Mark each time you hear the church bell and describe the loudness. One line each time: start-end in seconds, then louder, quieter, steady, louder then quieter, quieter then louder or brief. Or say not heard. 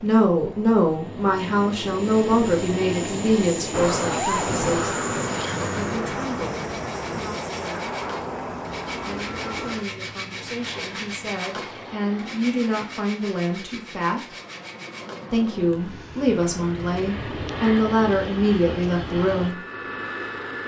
not heard.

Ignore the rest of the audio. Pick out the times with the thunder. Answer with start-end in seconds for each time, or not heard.
3.7-7.3.